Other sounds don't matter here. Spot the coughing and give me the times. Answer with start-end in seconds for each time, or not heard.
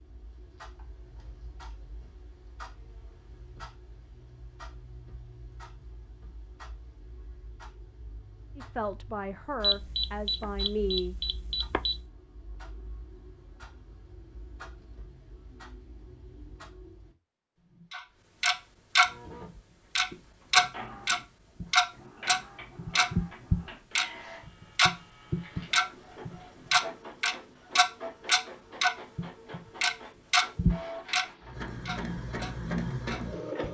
not heard.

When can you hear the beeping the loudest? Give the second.
10 s.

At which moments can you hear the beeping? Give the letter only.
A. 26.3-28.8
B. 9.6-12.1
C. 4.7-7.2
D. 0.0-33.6
B.